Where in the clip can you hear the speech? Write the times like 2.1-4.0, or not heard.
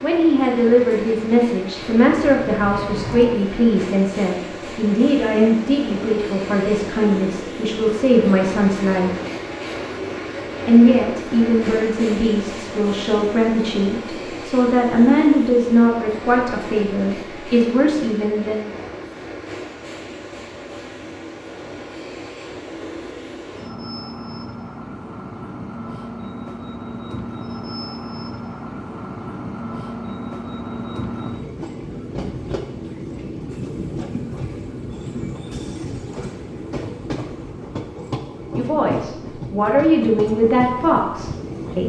0.0-9.1, 10.7-18.7, 38.5-41.8.